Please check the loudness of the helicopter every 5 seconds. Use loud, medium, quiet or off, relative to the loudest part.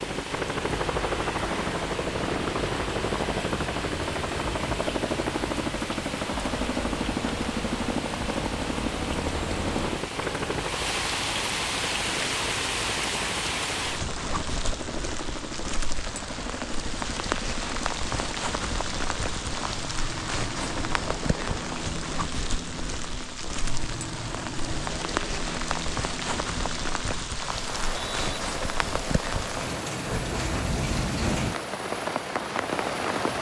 loud, loud, medium, medium, medium, medium, medium.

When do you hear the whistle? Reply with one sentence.
You can hear the whistle from 27.6 to 28.4 s.